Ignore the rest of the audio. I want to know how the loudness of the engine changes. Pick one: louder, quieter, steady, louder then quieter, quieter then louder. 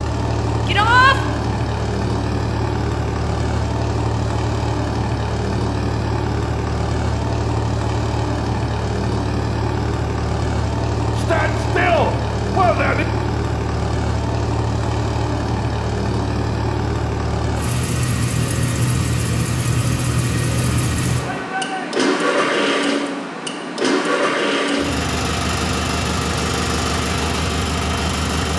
steady.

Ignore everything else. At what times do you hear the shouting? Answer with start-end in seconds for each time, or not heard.
0.7-1.1, 11.2-13.1, 21.2-21.9.